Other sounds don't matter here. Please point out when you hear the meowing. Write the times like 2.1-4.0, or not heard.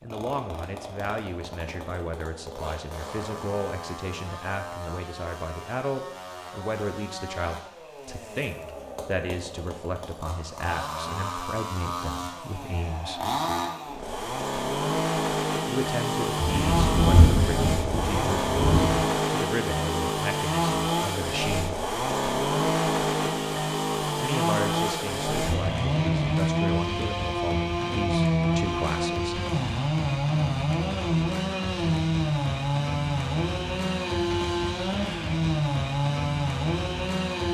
not heard.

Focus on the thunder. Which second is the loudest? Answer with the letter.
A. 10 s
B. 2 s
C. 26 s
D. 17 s
D.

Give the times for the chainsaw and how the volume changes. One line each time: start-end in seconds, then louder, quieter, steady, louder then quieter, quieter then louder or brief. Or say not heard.
0.0-37.4 louder.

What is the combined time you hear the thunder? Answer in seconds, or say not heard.
3 s.